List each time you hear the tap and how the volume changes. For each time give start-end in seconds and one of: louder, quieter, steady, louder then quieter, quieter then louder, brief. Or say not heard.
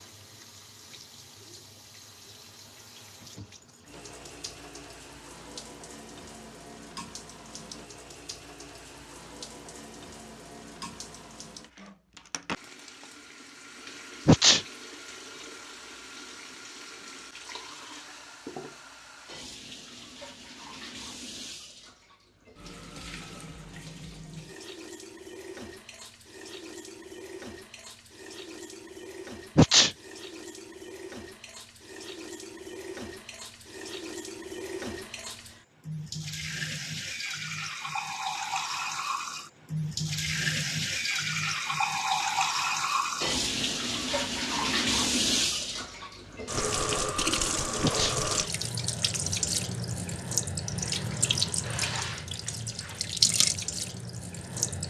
0.0-54.8 louder.